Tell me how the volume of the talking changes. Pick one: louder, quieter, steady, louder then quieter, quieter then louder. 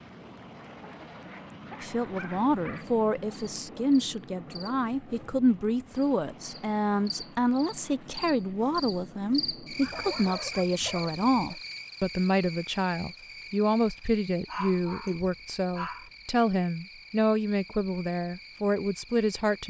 steady.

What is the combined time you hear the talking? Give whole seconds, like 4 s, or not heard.
18 s.